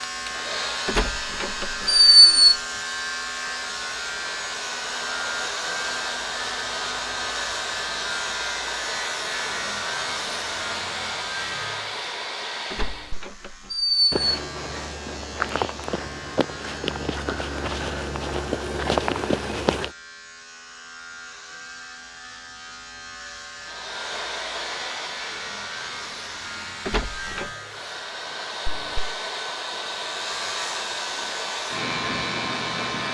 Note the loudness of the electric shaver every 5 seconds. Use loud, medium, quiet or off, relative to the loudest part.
loud, loud, medium, medium, medium, medium, loud.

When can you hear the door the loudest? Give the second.
2 s.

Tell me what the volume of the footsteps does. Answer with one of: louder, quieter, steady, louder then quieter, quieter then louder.
louder.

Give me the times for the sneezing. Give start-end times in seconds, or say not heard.
not heard.